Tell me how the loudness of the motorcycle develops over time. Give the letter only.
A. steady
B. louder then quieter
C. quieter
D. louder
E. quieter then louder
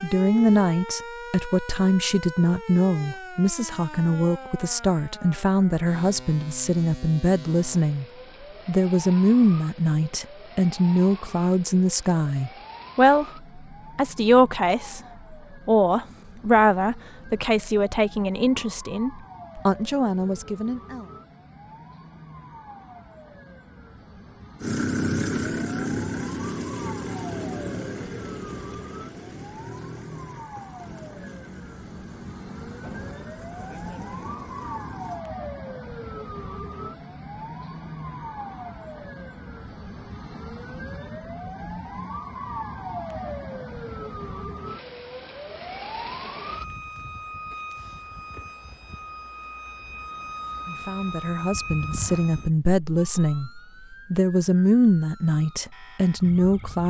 C.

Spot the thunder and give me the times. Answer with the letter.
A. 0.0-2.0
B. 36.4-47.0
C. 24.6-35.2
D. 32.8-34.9
D.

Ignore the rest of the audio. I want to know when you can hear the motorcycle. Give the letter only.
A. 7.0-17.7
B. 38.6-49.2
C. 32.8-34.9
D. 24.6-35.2
D.